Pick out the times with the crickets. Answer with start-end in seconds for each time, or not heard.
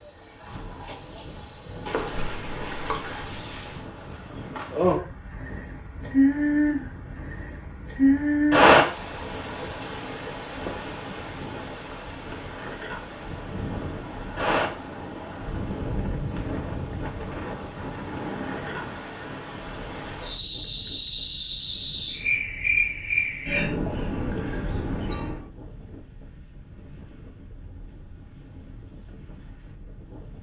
0.0-25.4.